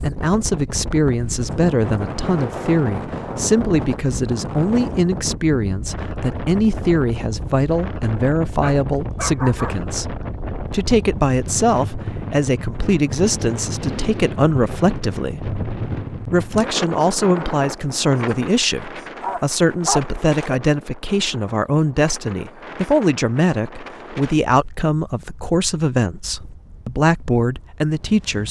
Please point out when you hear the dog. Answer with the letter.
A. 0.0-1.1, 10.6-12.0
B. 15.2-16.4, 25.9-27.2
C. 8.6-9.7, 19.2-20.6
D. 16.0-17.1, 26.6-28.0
C.